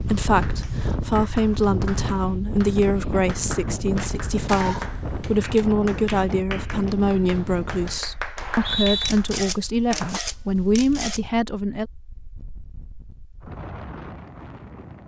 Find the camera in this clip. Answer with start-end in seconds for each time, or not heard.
4.0-5.7, 9.1-11.2.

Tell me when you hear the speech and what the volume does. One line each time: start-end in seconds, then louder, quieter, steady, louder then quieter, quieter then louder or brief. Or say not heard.
0.0-11.8 steady.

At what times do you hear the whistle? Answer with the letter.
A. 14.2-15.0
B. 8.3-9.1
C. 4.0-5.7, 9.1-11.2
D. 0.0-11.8
B.